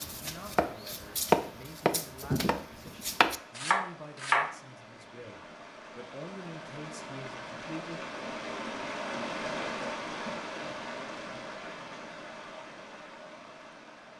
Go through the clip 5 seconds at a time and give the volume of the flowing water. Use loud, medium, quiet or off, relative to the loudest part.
quiet, loud, loud.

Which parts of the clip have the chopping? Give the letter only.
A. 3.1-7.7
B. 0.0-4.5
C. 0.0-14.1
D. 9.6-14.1
B.